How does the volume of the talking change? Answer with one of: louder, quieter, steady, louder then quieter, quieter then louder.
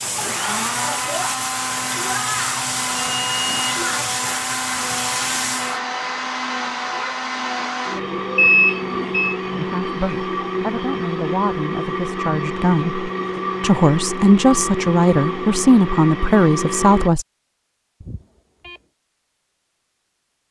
louder.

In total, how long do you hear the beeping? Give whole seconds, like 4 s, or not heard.
3 s.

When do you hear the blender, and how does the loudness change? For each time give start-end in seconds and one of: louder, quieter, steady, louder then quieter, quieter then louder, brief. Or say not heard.
0.0-17.1 steady.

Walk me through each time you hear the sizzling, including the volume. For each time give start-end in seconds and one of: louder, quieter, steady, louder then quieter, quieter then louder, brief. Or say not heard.
0.0-5.8 steady.